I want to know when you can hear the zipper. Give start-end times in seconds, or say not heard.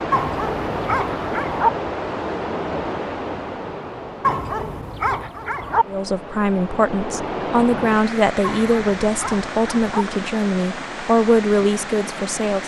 not heard.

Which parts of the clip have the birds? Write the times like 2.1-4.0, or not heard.
not heard.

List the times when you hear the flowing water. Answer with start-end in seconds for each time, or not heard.
0.0-12.6.